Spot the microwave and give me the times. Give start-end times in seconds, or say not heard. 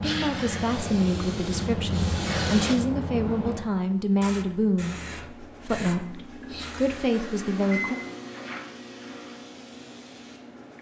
4.8-10.7.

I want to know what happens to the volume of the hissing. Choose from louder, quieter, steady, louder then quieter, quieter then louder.
quieter.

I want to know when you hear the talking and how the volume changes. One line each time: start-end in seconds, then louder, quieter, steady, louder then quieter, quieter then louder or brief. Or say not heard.
0.0-8.0 steady.